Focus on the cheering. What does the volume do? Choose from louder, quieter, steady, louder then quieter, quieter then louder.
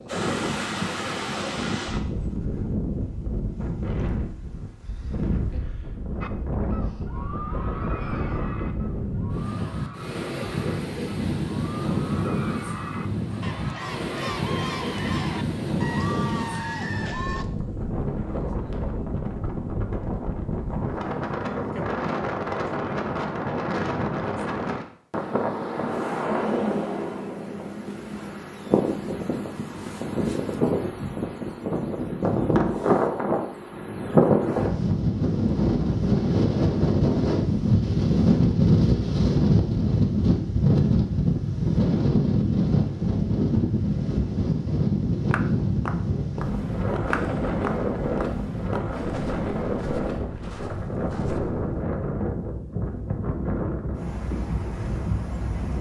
quieter then louder.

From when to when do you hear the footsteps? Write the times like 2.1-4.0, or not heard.
45.3-51.7.